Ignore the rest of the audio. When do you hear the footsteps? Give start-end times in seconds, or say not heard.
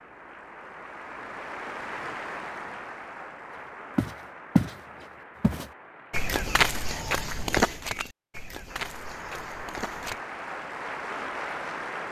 4.0-10.2.